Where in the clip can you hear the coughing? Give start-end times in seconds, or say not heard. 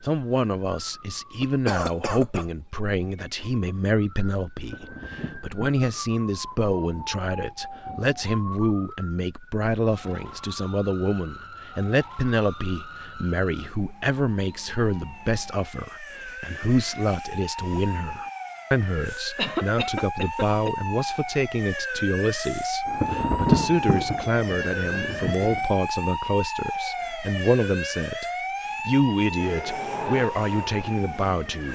1.4-2.5, 19.4-20.8.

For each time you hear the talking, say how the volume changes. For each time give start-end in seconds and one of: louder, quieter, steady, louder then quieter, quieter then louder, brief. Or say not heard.
0.0-28.2 steady
28.9-31.7 brief.